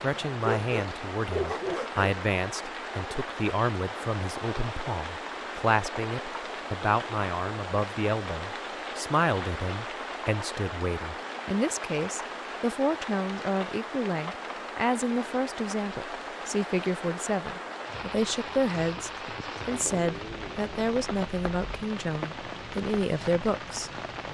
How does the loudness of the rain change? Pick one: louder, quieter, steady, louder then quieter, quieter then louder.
steady.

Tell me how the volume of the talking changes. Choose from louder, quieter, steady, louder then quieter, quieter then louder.
steady.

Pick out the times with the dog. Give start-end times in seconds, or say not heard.
0.4-2.1.